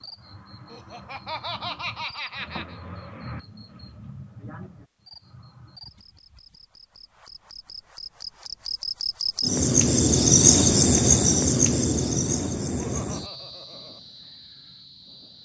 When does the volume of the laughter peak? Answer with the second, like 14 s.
2 s.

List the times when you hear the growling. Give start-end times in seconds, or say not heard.
not heard.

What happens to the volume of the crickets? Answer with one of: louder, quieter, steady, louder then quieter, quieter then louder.
louder then quieter.